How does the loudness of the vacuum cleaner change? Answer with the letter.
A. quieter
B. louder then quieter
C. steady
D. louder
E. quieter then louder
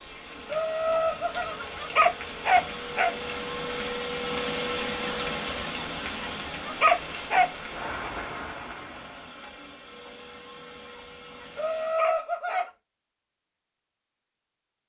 B.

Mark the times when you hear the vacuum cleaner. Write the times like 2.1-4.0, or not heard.
0.0-12.1.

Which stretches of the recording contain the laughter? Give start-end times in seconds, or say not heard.
0.5-1.6, 11.6-12.7.